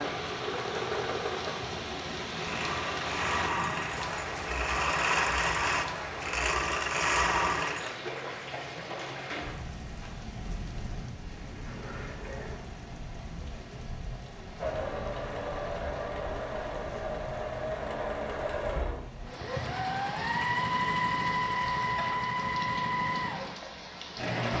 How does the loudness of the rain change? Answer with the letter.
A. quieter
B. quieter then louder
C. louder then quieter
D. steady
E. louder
A.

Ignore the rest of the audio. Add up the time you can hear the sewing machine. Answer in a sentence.
You can hear the sewing machine for 18 seconds altogether.